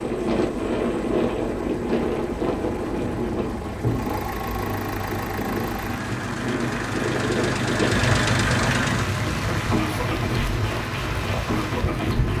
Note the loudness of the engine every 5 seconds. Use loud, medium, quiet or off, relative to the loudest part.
medium, loud, loud.